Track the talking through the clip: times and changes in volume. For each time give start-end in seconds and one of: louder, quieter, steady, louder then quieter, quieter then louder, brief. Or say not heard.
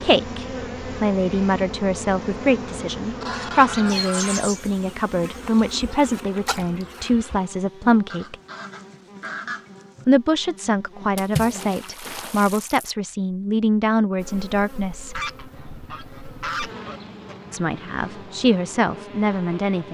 0.0-8.3 steady
10.1-15.2 steady
17.5-19.8 brief.